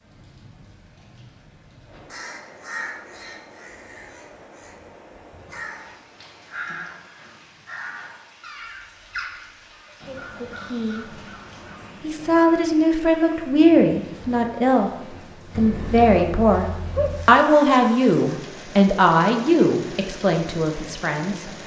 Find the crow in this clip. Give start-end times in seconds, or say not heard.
1.9-12.7.